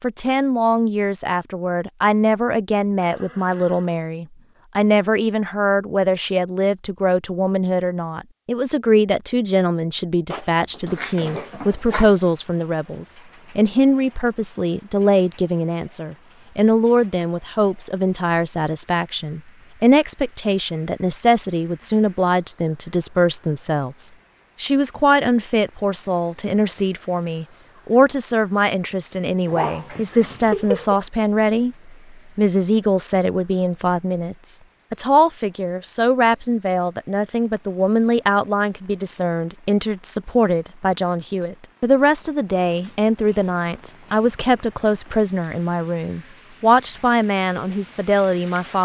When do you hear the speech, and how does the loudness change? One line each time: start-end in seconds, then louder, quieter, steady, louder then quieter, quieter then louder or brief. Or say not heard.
0.0-48.8 steady.